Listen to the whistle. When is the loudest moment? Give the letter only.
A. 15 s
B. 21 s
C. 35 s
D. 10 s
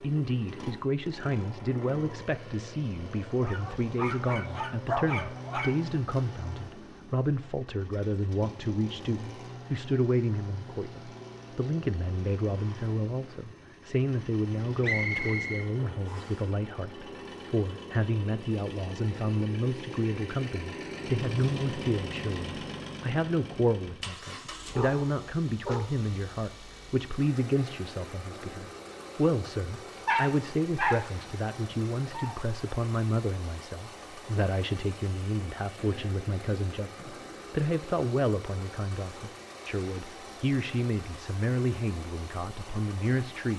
A.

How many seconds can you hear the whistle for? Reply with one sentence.
You can hear the whistle for 2 seconds altogether.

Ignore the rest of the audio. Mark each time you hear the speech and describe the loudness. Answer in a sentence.
You can hear the speech from 0.0 to 43.5 s, at a steady volume.